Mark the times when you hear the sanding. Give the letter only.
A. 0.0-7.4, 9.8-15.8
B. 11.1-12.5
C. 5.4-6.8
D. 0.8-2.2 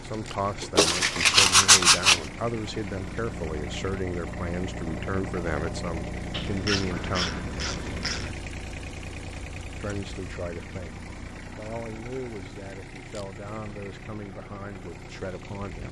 D.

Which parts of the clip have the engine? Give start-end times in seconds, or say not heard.
0.0-15.8.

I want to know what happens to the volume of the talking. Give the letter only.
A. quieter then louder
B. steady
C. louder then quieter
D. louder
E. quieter
E.